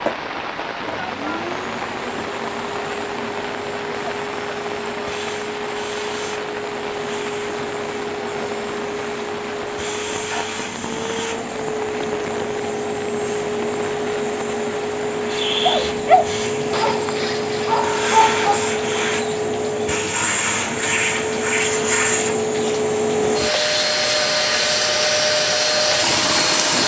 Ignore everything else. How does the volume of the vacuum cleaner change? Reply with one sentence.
The volume of the vacuum cleaner goes up.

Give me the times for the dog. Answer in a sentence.
The dog can be heard from 15.6 to 18.6 s.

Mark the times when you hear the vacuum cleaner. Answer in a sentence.
The vacuum cleaner can be heard from 0.0 to 26.8 s.